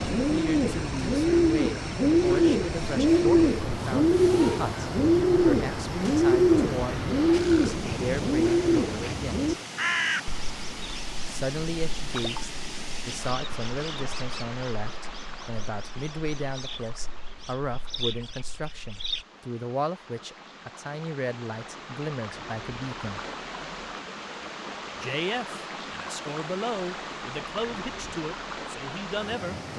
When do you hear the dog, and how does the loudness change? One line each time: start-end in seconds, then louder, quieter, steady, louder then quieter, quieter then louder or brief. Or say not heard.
not heard.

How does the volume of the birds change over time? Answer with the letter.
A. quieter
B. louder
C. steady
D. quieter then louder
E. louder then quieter
A.